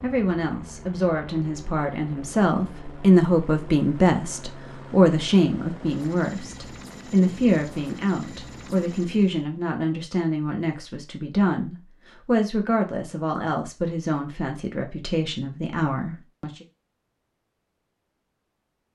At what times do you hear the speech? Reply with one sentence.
You can hear the speech from 0.0 to 16.6 s.